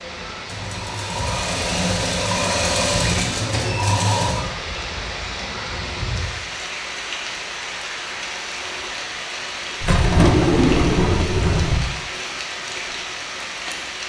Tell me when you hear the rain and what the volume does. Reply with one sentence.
The rain can be heard from 0.0 to 14.0 s, at a steady volume.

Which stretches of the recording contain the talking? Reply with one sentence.
You can't hear the talking here.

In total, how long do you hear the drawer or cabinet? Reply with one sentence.
You can hear the drawer or cabinet for 3 seconds altogether.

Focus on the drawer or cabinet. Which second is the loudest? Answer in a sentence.
The loudest moment of the drawer or cabinet is at 10 seconds.